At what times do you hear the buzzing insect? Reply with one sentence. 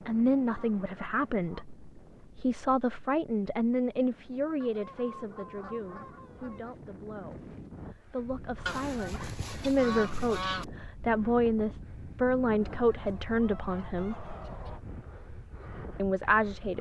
The buzzing insect can't be heard in this clip.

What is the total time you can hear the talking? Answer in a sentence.
You can hear the talking for 15 seconds altogether.